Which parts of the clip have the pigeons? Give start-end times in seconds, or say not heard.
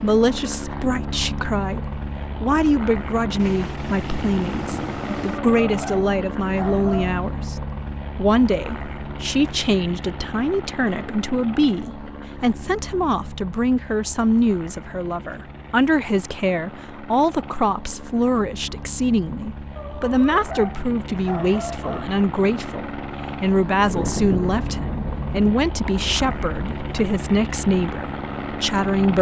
not heard.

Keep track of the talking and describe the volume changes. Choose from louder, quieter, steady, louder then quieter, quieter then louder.
steady.